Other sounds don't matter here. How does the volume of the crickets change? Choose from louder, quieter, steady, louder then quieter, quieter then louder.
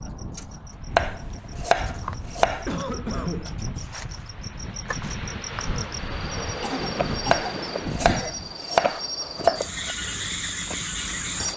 louder.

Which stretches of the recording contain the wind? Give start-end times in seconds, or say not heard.
0.0-8.6.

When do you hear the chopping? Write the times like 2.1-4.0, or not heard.
0.9-2.6, 7.3-9.9.